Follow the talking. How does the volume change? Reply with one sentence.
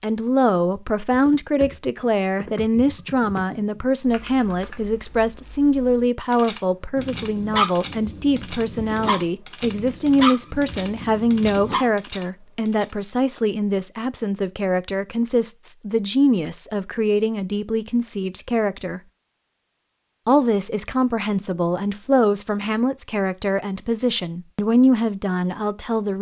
The volume of the talking stays about the same.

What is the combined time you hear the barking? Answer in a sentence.
The barking can be heard for 5 seconds in total.